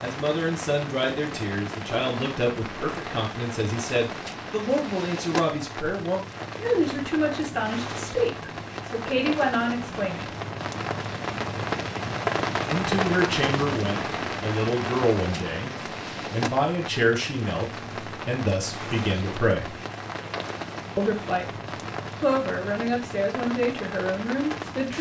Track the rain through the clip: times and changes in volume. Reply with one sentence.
You can hear the rain from 0.0 to 24.9 s, getting louder then quieter.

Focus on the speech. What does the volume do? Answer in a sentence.
The volume of the speech stays about the same.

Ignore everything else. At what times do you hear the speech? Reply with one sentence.
The speech can be heard from 0.0 to 10.2 s, from 12.7 to 19.8 s and from 20.9 to 24.9 s.